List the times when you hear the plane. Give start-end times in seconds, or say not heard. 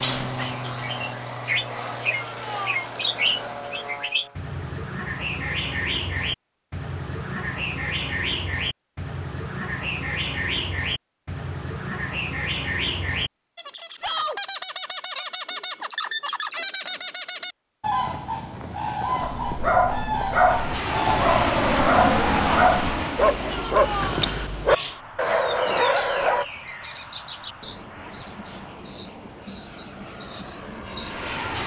0.0-4.4, 20.4-31.6.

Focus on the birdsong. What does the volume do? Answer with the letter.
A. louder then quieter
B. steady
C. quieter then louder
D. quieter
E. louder
B.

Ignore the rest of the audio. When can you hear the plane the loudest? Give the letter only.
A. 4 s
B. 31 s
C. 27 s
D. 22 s
D.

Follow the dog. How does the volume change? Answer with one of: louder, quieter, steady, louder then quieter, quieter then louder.
steady.